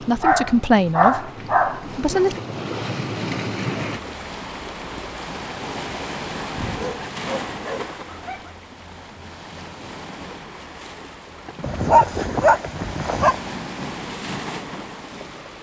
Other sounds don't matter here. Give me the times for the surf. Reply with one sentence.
You can hear the surf from 0.0 to 15.5 s.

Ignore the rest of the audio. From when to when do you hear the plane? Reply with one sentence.
You can't hear the plane here.